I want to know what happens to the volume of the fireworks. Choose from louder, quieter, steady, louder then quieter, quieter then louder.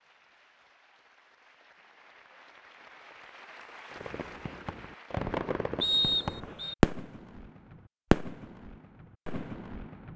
louder then quieter.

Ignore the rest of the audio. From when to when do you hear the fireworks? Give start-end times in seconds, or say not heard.
3.9-10.1.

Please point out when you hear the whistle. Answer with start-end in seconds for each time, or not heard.
5.8-6.8.